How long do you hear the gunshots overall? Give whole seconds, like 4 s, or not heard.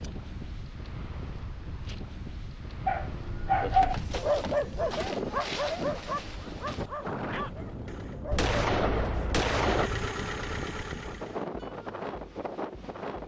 2 s.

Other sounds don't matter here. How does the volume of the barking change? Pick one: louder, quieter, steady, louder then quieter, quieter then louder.
quieter.